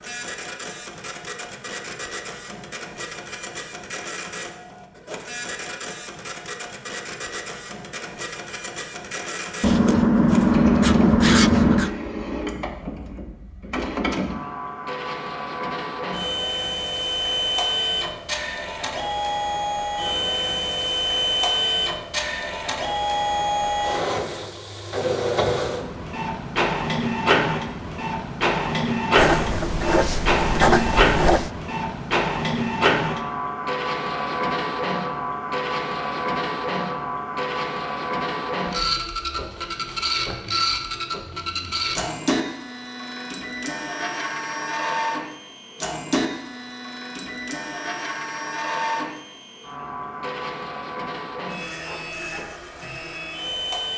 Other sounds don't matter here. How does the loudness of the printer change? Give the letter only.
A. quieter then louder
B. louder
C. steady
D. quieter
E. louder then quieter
E.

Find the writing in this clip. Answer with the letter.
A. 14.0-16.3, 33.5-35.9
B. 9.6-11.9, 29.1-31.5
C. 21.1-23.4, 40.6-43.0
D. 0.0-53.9
B.